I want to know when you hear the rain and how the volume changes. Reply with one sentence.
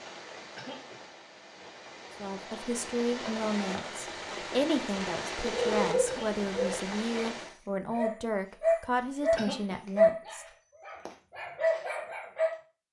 The rain can be heard from 0.0 to 7.5 s, getting louder.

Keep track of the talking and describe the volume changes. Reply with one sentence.
The loudness of the talking stays about the same.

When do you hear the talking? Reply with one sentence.
The talking can be heard from 2.2 to 10.4 s.